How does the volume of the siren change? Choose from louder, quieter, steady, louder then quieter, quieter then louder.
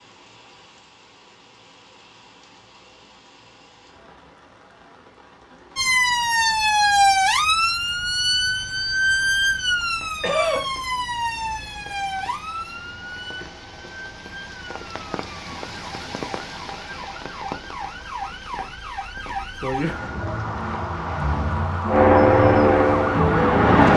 quieter then louder.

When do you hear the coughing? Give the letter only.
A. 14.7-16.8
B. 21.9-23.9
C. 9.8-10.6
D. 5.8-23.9
C.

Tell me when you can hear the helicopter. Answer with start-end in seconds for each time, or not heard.
21.9-23.9.